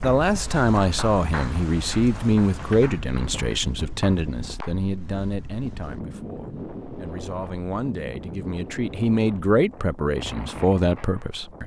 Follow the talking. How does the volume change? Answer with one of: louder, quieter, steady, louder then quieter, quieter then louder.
quieter then louder.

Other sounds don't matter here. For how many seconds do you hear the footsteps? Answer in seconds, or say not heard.
not heard.